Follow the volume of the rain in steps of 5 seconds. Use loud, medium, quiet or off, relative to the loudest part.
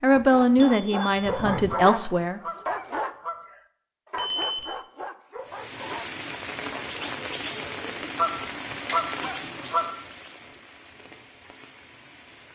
off, loud, quiet.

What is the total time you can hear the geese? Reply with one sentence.
You can hear the geese for 3 seconds altogether.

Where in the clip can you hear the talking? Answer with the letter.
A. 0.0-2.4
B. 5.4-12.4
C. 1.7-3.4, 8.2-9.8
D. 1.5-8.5
A.